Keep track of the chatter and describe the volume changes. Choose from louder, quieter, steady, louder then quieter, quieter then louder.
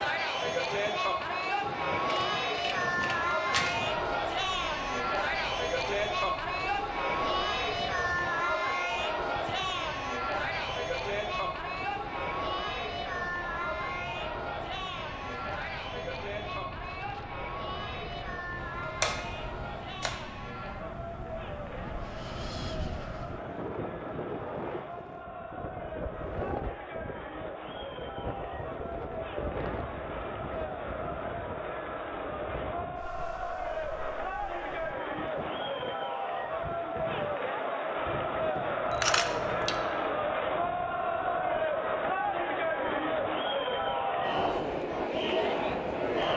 quieter then louder.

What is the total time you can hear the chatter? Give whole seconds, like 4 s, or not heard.
46 s.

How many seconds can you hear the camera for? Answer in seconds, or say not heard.
4 s.